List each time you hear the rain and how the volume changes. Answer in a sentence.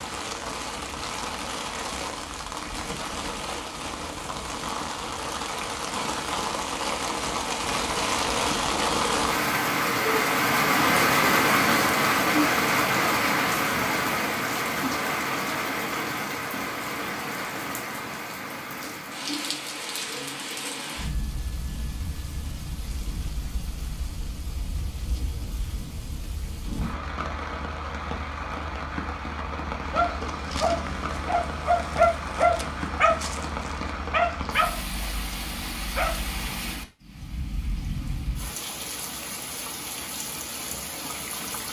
You can hear the rain from 0.0 to 41.6 s, getting louder then quieter.